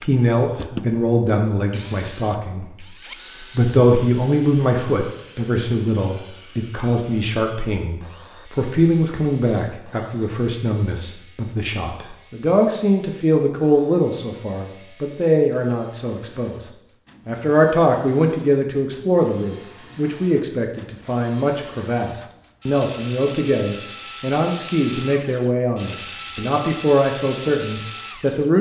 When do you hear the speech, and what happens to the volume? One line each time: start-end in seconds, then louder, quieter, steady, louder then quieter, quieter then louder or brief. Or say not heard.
0.0-28.5 steady.